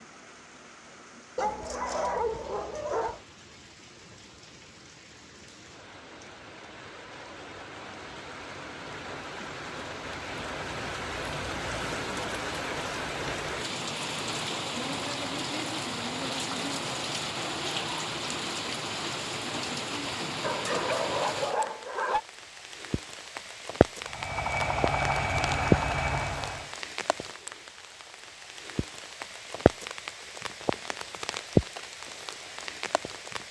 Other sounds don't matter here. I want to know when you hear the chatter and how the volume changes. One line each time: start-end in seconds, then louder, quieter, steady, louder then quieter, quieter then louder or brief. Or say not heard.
not heard.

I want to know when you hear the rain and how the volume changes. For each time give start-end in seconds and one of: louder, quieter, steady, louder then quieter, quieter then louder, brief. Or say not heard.
0.0-33.4 louder.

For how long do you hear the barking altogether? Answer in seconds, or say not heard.
4 s.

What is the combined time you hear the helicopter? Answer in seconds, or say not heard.
3 s.